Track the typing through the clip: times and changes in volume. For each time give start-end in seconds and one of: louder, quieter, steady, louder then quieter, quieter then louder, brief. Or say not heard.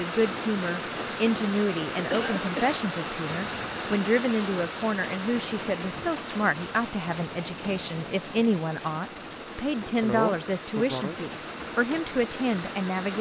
not heard.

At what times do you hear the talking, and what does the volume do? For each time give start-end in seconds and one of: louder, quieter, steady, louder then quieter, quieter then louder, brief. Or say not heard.
0.0-13.1 steady.